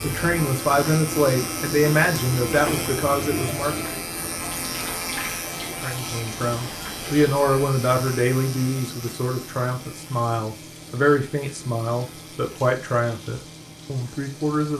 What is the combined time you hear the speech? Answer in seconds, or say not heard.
13 s.